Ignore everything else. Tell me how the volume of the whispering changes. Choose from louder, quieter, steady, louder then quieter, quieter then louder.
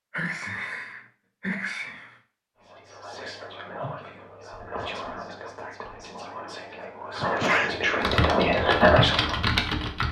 louder.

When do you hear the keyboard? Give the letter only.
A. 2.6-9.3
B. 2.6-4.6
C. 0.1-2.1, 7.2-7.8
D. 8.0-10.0
D.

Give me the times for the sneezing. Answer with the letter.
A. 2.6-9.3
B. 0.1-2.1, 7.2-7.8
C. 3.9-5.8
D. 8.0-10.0
B.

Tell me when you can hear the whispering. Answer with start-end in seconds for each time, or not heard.
2.6-9.3.